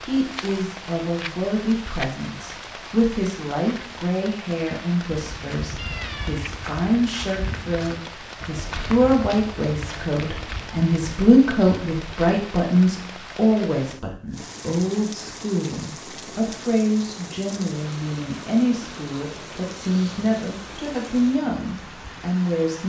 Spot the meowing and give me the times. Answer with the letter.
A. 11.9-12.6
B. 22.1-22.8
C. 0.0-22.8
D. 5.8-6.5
D.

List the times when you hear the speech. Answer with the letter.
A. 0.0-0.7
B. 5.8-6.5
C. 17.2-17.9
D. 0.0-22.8
D.